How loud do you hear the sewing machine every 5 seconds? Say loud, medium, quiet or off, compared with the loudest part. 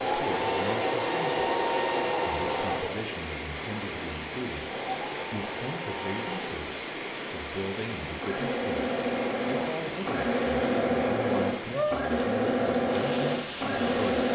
loud, medium, loud.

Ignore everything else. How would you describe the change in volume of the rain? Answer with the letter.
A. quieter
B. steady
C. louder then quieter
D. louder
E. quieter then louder
B.